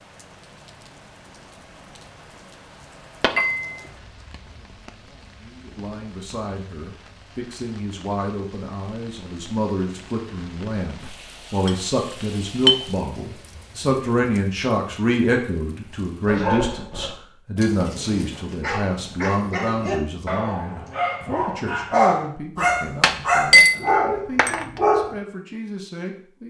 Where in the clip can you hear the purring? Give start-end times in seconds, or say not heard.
not heard.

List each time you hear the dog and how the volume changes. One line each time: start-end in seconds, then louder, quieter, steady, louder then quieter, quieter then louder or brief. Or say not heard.
16.2-25.1 louder.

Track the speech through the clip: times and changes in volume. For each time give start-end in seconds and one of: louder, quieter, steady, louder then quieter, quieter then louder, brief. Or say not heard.
5.4-26.4 louder then quieter.